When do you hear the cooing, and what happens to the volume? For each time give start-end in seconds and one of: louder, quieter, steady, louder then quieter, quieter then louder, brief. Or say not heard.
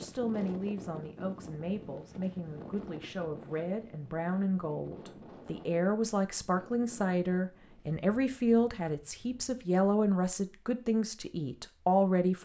not heard.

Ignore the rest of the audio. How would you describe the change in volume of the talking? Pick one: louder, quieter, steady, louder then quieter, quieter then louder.
louder.